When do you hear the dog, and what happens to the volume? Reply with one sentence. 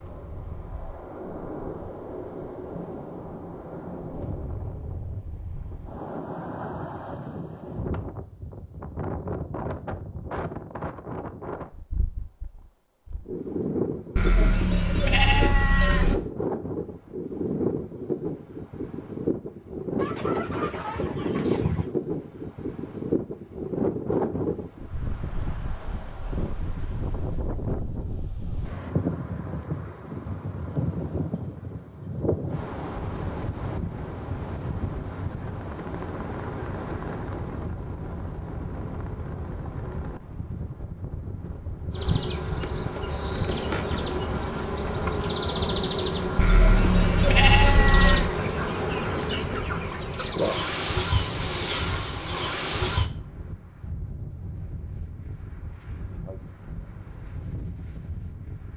You can't hear the dog here.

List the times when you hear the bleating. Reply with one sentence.
The bleating can be heard from 14.2 to 16.1 s and from 46.4 to 48.3 s.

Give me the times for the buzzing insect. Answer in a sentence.
The buzzing insect can be heard from 41.9 to 53.1 s.